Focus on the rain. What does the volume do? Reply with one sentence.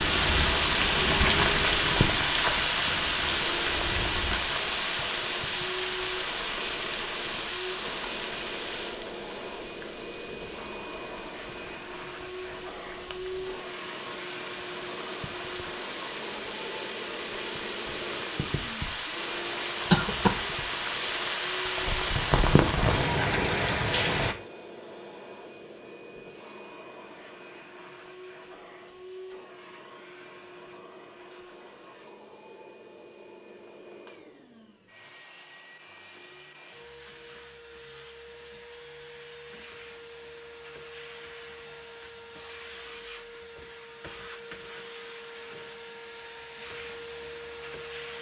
The loudness of the rain goes down, then up.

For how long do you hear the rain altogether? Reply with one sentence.
The rain can be heard for 24 seconds in total.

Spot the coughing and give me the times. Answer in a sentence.
You can hear the coughing from 19.9 to 20.4 s.